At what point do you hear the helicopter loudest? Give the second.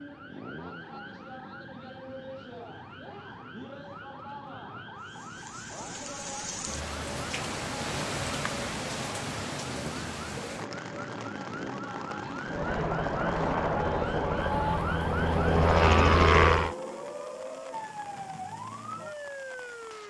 16 s.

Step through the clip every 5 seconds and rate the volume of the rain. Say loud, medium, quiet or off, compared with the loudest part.
off, loud, medium, quiet.